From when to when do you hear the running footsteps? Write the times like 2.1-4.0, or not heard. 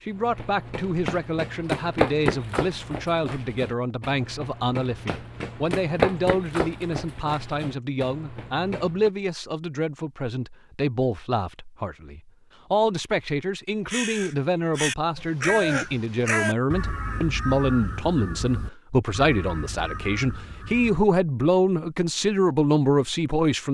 0.1-9.1.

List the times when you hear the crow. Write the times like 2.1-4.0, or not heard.
13.8-21.1.